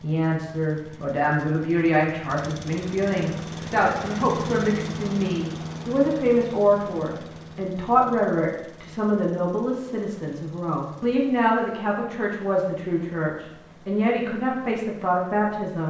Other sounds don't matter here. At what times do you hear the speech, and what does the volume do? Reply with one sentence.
The speech can be heard from 0.0 to 15.8 s, at a steady volume.